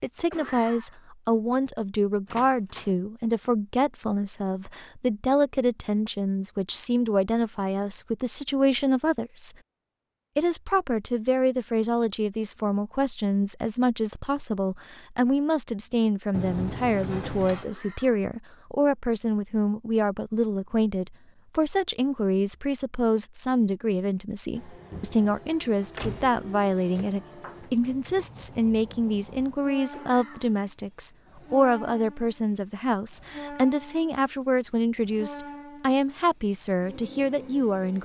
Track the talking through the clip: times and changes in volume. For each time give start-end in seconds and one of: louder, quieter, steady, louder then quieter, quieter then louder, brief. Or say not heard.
0.0-9.6 steady
10.3-38.0 steady.